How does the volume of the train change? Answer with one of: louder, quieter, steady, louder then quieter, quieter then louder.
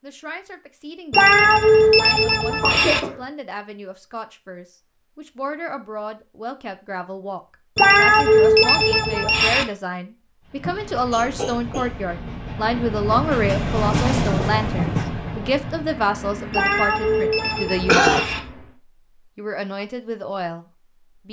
louder then quieter.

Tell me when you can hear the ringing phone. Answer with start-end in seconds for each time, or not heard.
1.1-3.0, 7.8-9.7, 16.5-18.4.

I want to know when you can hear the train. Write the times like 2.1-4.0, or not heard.
10.4-18.8.